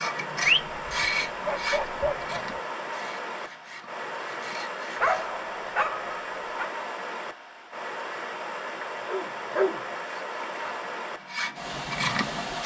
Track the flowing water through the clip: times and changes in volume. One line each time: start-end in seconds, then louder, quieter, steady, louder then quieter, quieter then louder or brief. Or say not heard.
0.0-12.6 steady.